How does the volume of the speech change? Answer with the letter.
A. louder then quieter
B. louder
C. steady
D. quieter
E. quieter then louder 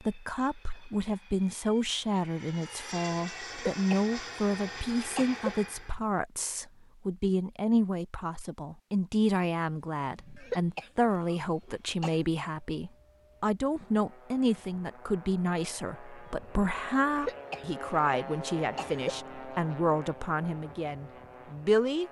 C.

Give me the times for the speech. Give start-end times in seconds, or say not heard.
0.0-22.0.